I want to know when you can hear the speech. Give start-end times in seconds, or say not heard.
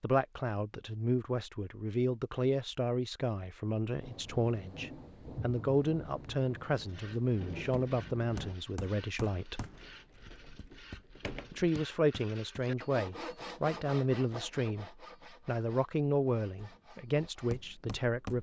0.0-9.6, 11.5-18.3.